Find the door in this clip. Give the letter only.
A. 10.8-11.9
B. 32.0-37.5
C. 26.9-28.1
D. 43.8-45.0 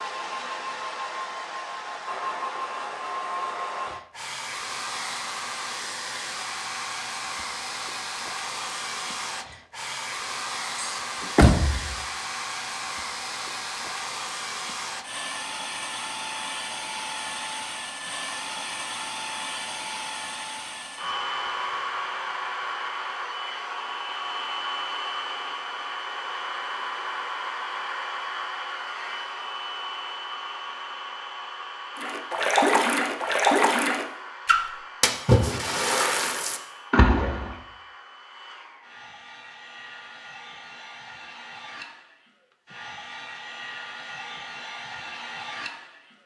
A.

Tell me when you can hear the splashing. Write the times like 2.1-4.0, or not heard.
32.0-37.5.